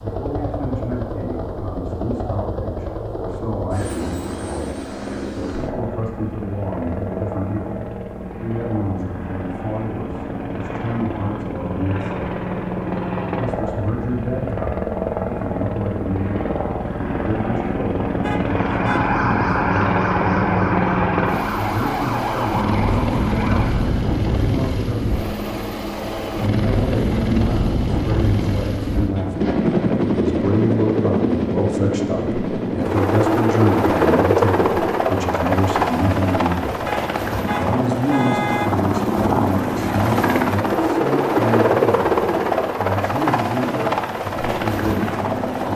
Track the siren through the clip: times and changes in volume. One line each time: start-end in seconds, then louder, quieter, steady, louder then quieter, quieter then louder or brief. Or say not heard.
18.4-24.1 quieter.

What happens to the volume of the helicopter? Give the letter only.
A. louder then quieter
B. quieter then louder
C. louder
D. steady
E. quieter
C.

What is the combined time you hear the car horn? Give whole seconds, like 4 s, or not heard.
3 s.